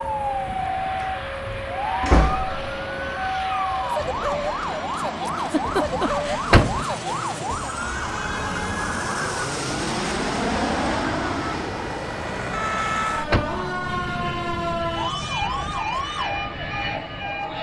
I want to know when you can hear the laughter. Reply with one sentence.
The laughter can be heard from 5.3 to 6.5 s.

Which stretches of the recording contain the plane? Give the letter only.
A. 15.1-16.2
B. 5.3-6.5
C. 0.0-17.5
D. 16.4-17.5
C.